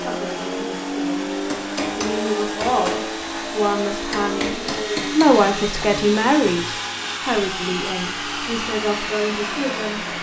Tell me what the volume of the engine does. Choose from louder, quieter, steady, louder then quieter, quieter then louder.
steady.